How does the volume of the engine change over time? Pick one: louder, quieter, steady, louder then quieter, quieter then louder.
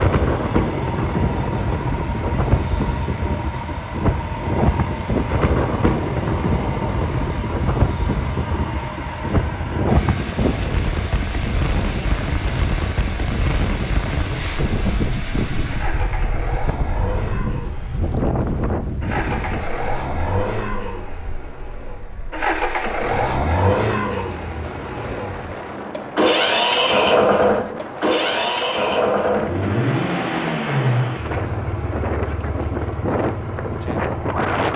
louder.